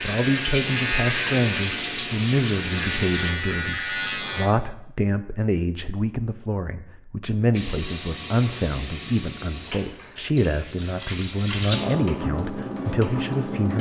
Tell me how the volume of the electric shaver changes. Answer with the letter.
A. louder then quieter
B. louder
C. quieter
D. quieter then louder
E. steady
D.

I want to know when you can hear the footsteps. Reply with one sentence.
The footsteps can't be heard in this clip.